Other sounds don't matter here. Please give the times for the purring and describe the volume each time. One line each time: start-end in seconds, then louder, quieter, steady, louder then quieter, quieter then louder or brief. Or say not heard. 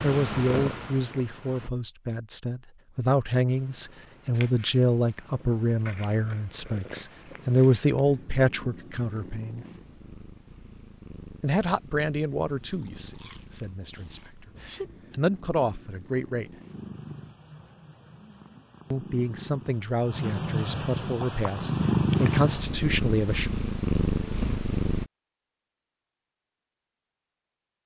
0.0-1.7 brief
3.5-25.1 louder.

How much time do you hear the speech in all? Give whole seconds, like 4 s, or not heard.
19 s.